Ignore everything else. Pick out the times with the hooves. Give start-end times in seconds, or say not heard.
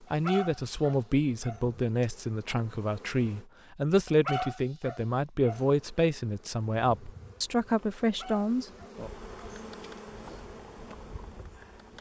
9.1-11.9.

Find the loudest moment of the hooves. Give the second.
10 s.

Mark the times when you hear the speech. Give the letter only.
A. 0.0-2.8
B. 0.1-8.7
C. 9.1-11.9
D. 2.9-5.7
B.